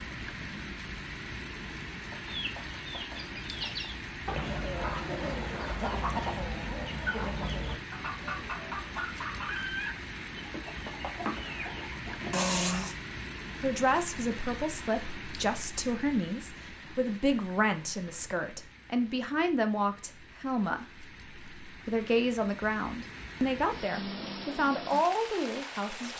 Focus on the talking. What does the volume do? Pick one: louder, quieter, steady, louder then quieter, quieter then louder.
steady.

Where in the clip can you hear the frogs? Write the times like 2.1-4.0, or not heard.
not heard.